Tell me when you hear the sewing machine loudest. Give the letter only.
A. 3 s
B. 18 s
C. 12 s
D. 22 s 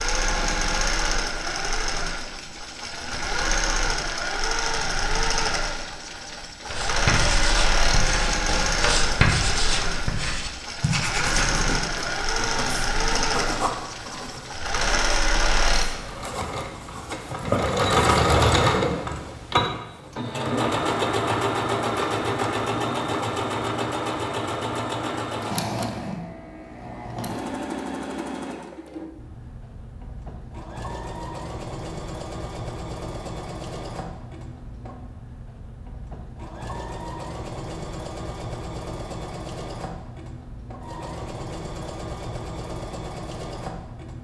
B.